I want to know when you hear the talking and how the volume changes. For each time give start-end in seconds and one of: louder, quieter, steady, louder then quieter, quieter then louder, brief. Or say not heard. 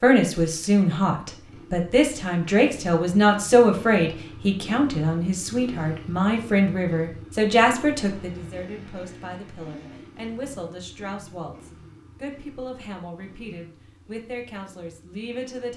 0.0-15.7 quieter.